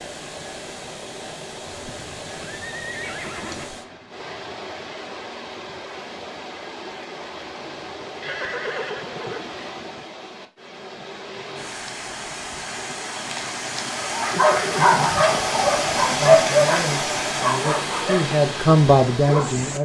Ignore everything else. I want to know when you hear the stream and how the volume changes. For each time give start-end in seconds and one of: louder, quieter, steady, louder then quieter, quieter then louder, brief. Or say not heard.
0.0-19.8 louder.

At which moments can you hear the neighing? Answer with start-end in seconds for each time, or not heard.
1.6-3.6, 8.2-9.4, 14.3-15.3.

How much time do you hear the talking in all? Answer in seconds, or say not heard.
4 s.